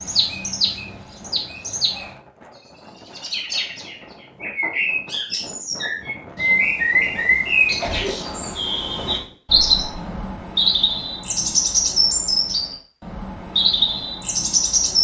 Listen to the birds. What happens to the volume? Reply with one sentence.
The volume of the birds goes up.